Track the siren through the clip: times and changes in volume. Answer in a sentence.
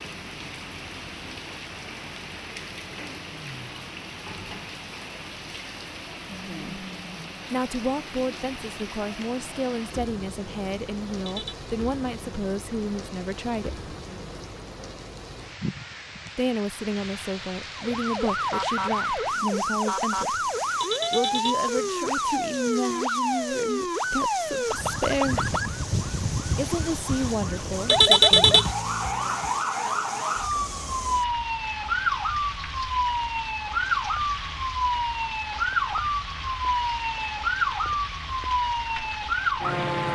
The siren can be heard from 17.8 to 40.1 s, at a steady volume.